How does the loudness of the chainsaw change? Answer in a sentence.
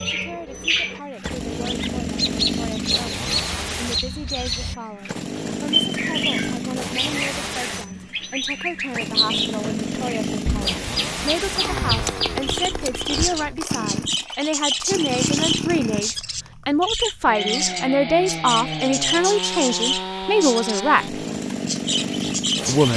The loudness of the chainsaw stays about the same.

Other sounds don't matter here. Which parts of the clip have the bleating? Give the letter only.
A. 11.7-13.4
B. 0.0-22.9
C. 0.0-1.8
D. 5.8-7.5
A.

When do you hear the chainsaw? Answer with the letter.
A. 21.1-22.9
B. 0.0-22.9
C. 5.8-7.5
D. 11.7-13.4
B.